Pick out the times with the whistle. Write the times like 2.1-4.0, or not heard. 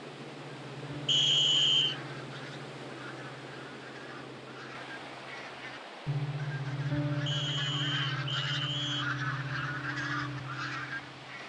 1.1-1.9, 7.2-9.1.